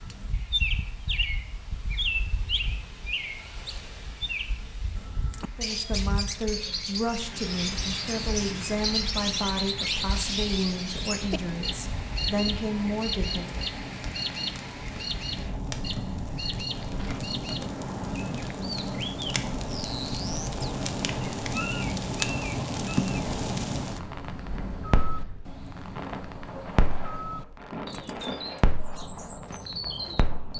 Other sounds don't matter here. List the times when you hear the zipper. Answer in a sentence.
You can't hear the zipper here.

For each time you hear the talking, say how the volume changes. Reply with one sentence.
You can hear the talking from 5.5 to 13.6 s, at a steady volume.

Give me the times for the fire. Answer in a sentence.
The fire can be heard from 7.2 to 30.5 s.